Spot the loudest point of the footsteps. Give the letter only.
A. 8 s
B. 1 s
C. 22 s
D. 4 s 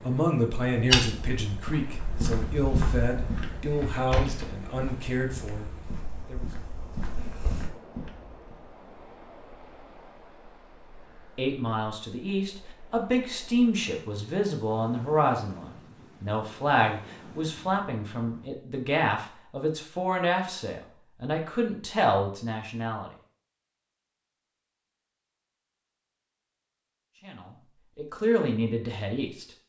B.